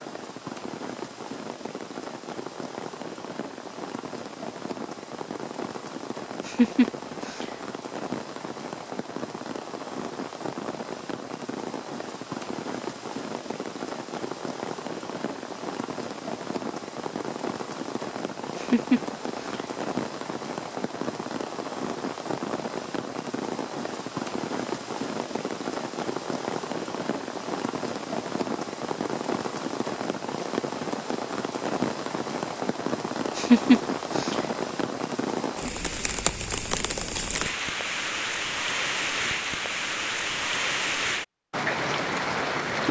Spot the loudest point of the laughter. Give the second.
34 s.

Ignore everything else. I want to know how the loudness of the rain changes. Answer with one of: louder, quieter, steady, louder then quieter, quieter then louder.
louder.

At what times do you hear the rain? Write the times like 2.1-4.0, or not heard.
0.0-42.8.